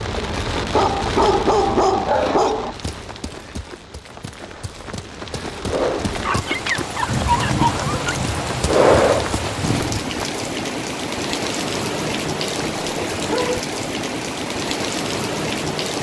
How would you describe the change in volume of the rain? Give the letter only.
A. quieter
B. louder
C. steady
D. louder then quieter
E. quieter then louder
E.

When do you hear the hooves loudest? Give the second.
9 s.